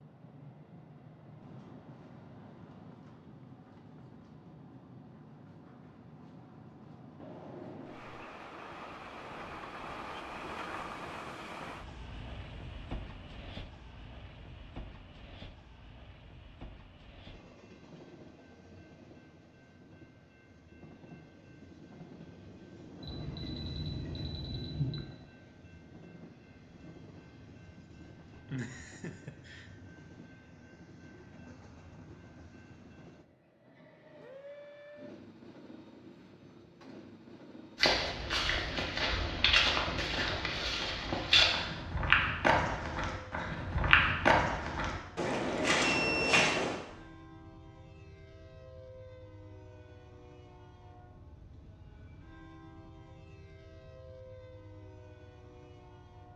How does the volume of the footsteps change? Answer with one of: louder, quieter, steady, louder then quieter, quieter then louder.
steady.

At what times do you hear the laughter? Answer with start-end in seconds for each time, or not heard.
28.5-29.7.